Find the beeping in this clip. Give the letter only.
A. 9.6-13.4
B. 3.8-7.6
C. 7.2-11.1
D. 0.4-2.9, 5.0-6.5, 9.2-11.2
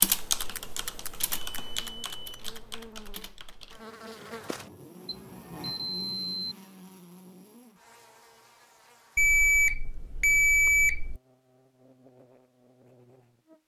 D.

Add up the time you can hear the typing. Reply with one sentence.
You can hear the typing for 4 seconds altogether.